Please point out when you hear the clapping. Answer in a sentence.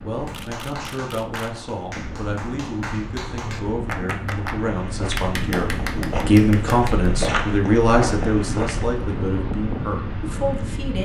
You can hear the clapping from 0.2 to 7.1 s.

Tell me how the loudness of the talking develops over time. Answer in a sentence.
The loudness of the talking goes up, then down.